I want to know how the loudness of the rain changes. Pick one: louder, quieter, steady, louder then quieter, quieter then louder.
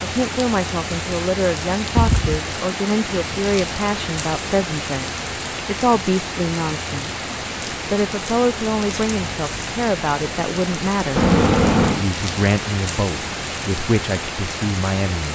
steady.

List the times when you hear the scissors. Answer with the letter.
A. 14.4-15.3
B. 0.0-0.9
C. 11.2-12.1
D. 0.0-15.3
C.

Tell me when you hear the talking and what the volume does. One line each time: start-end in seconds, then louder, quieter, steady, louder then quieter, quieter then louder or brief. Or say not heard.
0.0-15.3 steady.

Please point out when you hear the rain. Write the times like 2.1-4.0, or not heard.
0.0-15.3.